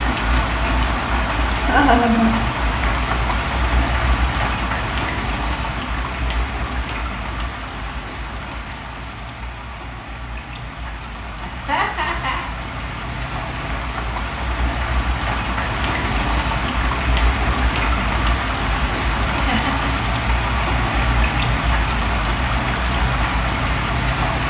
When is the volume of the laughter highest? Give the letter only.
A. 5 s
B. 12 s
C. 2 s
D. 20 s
C.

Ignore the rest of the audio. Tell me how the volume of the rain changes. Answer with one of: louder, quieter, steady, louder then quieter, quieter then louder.
quieter then louder.